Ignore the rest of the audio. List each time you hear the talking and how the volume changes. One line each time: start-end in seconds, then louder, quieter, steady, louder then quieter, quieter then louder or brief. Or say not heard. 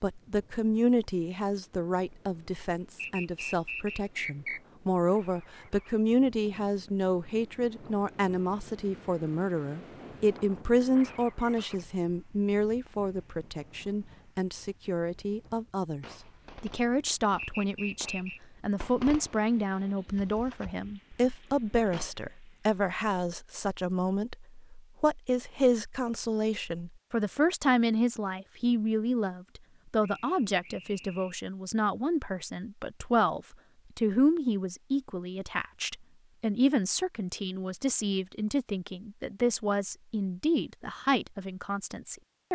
0.0-42.5 steady.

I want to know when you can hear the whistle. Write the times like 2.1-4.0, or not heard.
3.0-4.6, 17.4-18.4, 30.0-31.4.